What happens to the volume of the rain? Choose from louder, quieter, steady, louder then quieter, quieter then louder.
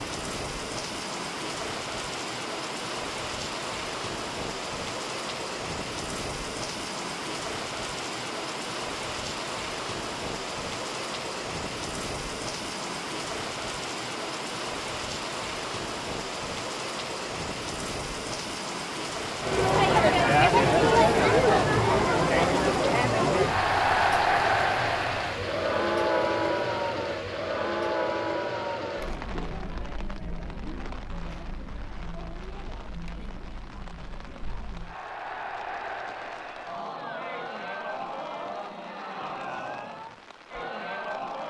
quieter.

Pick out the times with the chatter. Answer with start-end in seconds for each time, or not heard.
19.4-41.4.